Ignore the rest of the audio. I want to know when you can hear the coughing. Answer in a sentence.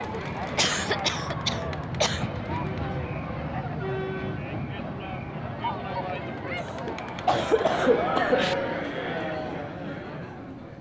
The coughing can be heard from 0.6 to 2.2 s and from 6.6 to 8.6 s.